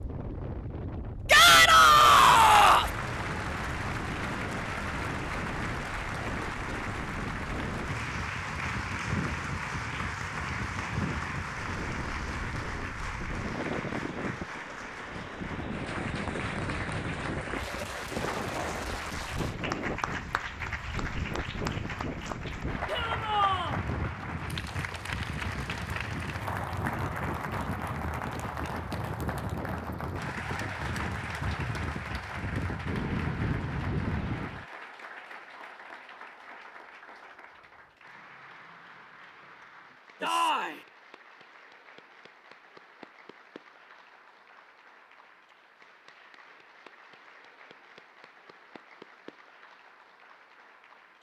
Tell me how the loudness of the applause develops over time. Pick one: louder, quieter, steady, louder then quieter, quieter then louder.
quieter.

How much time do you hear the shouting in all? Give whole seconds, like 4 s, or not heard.
3 s.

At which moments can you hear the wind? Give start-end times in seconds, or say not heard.
0.0-34.6.